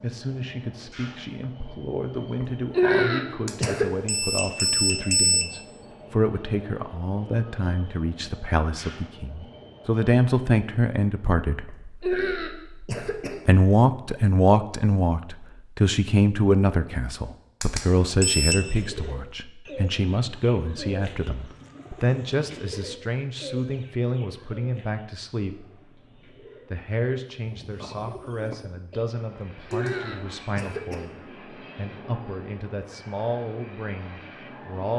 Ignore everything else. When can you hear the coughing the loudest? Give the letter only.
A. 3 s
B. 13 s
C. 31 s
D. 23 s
A.